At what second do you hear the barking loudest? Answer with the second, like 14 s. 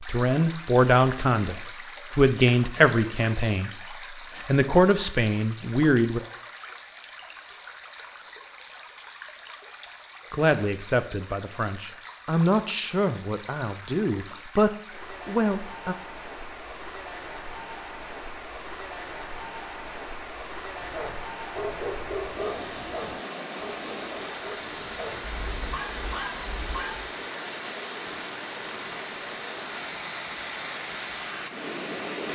22 s.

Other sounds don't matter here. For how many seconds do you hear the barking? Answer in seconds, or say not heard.
6 s.